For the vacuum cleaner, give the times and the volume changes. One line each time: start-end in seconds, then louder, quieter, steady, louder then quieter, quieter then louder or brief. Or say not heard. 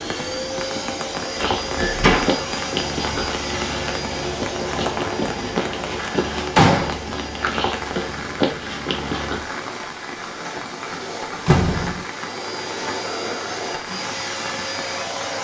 0.0-15.3 quieter then louder.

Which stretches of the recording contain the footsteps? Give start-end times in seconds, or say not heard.
1.4-9.4.